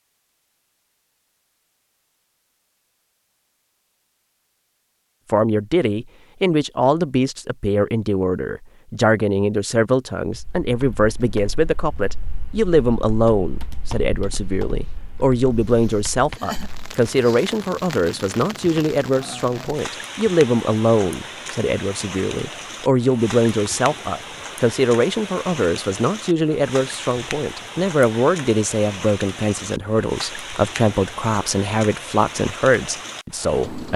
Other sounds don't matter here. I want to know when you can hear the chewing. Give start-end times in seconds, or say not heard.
not heard.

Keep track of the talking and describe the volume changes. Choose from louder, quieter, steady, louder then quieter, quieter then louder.
steady.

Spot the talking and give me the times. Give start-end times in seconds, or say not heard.
5.3-33.9.